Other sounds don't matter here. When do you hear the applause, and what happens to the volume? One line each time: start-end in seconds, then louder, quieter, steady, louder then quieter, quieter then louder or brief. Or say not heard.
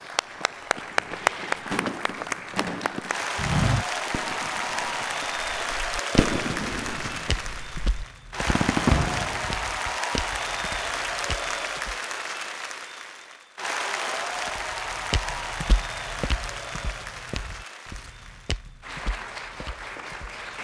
0.0-20.5 quieter.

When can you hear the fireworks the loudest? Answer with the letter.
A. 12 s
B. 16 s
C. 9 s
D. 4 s
C.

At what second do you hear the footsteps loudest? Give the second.
4 s.